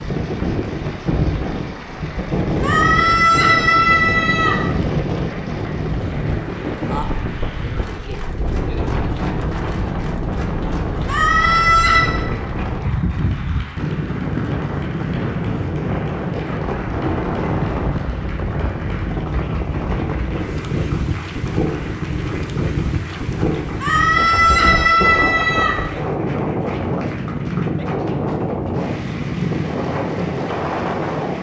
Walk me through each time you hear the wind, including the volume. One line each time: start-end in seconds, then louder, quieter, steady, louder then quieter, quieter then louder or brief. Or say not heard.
0.0-31.3 steady.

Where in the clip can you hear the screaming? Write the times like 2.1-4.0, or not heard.
2.6-4.5, 11.1-12.2, 23.8-25.8.